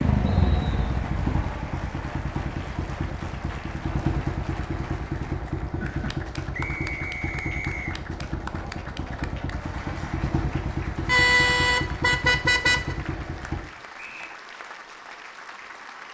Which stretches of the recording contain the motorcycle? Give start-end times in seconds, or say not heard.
0.0-13.6.